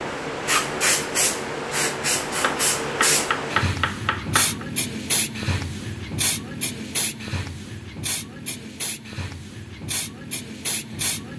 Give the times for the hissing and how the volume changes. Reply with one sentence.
You can hear the hissing from 0.0 to 11.3 s, getting quieter.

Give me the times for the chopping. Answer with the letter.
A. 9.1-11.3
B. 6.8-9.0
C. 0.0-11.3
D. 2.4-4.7
D.